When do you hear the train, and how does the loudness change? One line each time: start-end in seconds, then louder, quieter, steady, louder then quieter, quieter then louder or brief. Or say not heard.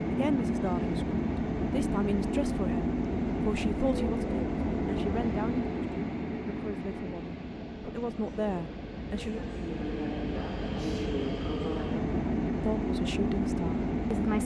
0.0-14.4 quieter then louder.